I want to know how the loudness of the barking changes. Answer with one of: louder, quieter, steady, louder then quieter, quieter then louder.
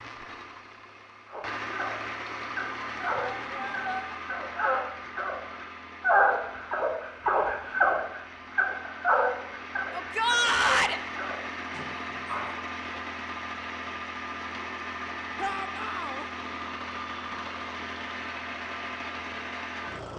louder then quieter.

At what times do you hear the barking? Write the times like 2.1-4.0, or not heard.
1.2-12.6.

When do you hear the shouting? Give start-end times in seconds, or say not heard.
3.0-4.0, 9.9-11.0, 15.3-16.2.